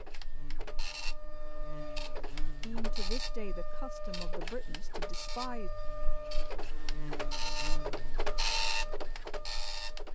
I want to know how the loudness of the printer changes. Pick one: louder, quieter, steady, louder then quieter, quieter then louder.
louder.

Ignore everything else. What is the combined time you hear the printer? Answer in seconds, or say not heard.
10 s.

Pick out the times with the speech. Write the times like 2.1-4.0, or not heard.
2.6-5.7.